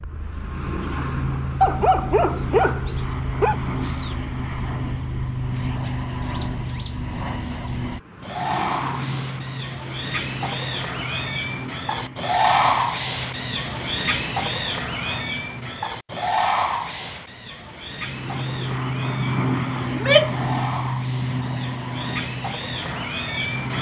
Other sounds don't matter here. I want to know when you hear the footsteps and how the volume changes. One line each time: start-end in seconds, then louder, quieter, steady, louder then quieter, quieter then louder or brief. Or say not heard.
not heard.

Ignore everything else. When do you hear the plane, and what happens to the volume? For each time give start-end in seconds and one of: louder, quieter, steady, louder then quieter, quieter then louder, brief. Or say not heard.
0.0-15.8 quieter
17.9-23.7 quieter.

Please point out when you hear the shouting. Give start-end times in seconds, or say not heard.
19.9-20.5.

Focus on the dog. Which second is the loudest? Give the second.
2 s.